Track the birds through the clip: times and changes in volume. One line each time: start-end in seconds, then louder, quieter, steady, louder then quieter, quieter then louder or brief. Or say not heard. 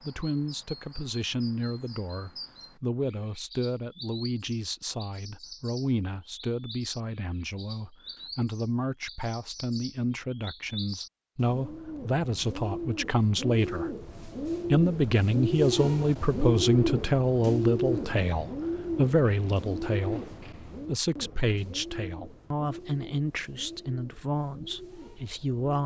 0.0-25.8 louder then quieter.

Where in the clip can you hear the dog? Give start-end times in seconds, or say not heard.
not heard.